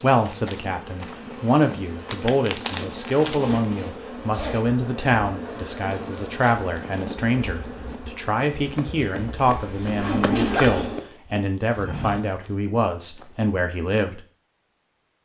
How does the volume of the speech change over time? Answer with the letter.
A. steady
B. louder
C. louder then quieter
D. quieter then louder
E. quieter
A.